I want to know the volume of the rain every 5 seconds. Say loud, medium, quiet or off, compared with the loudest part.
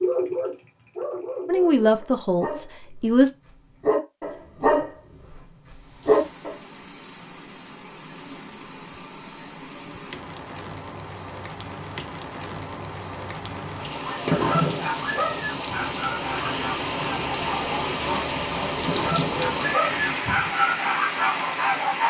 off, quiet, medium, loud, loud.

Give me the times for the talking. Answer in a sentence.
You can hear the talking from 1.4 to 3.3 s.